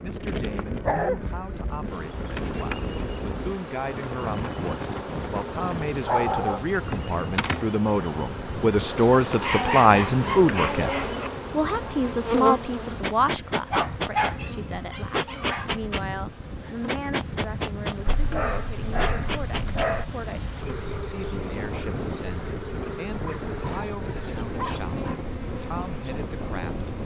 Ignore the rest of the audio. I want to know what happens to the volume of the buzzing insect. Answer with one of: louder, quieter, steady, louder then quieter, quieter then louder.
louder then quieter.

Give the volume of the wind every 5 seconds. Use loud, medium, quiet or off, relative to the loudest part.
loud, loud, medium, loud, loud, loud.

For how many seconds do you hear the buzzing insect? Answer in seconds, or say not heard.
27 s.